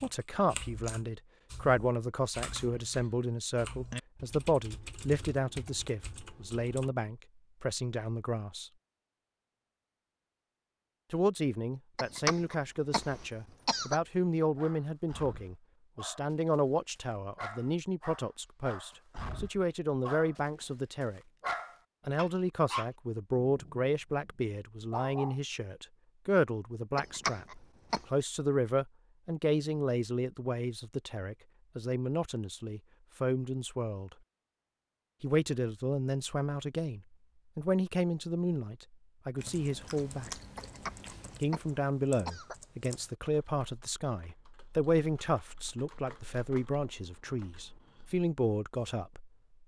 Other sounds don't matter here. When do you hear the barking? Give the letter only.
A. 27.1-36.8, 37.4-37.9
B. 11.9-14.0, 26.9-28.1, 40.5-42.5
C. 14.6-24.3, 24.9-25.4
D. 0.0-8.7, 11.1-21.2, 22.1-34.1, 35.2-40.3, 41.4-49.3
C.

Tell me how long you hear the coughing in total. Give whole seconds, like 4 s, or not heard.
5 s.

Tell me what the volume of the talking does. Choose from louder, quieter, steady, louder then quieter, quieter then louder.
steady.